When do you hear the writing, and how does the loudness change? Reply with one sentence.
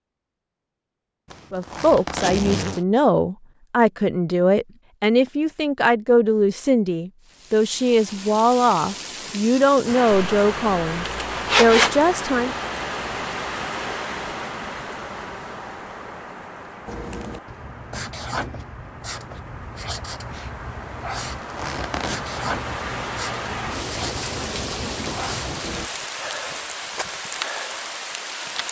You can hear the writing from 16.9 to 25.9 s, at a steady volume.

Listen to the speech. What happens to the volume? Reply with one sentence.
The loudness of the speech stays about the same.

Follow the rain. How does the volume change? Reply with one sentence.
The volume of the rain goes down, then up.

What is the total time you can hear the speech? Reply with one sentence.
The speech can be heard for 11 seconds in total.